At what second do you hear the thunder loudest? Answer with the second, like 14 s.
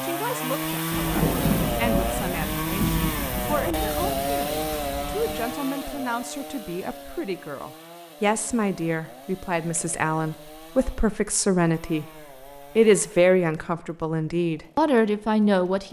1 s.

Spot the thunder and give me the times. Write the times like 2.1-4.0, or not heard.
0.9-5.4.